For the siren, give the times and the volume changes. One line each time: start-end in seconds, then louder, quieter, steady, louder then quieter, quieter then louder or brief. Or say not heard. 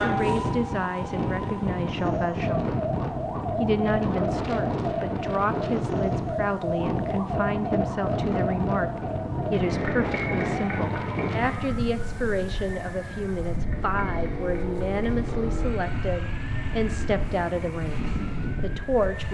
0.0-19.2 quieter.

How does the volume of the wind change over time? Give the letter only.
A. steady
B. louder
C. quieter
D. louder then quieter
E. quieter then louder
C.